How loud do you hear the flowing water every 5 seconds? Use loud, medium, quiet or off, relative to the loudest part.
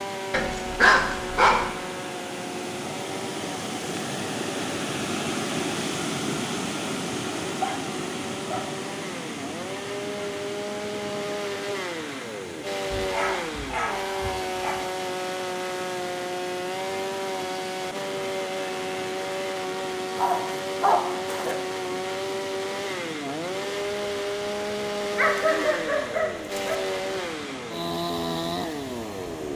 loud, loud, medium, medium, medium, medium.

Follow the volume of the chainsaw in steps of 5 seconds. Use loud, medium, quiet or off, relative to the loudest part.
medium, medium, loud, loud, loud, loud.